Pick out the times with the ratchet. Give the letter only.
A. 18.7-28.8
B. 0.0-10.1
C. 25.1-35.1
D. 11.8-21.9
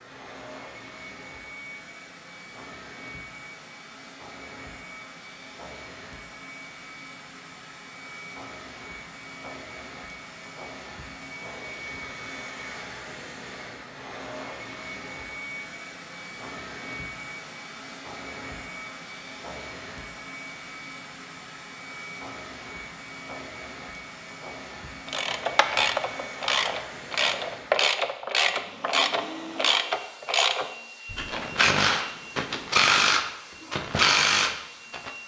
C.